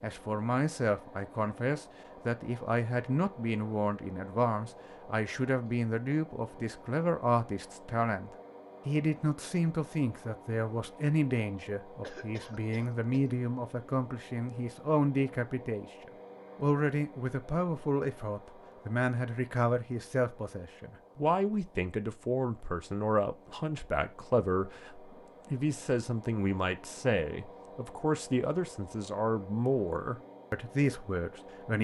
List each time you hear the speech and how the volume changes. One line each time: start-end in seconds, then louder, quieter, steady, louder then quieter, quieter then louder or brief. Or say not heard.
0.0-15.9 steady
16.6-31.7 steady.